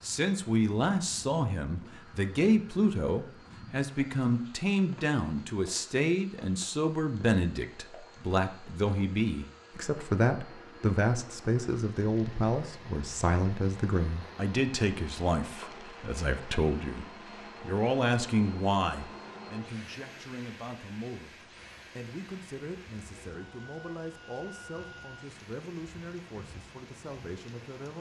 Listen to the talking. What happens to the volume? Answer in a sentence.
The volume of the talking goes down.